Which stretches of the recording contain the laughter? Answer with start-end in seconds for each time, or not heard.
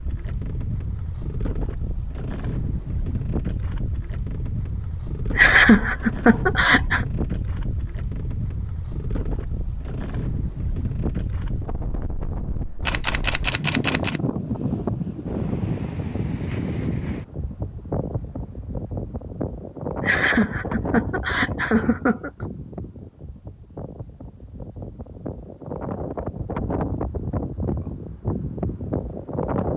5.3-7.0, 20.0-22.4.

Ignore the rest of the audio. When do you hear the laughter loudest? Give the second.
6 s.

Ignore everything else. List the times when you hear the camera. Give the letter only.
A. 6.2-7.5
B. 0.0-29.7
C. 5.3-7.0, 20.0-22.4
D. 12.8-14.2
D.